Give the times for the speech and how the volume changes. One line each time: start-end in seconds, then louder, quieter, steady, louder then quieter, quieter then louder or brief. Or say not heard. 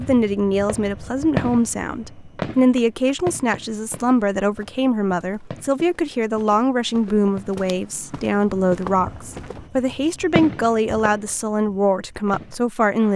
0.0-13.1 steady.